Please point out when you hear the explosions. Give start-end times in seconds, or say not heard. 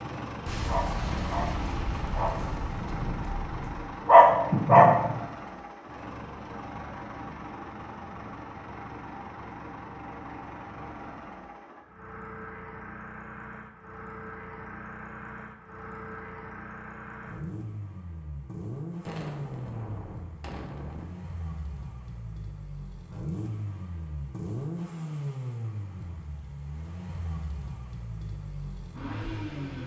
0.5-3.9, 19.1-21.1.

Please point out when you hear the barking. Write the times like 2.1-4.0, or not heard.
0.0-5.2.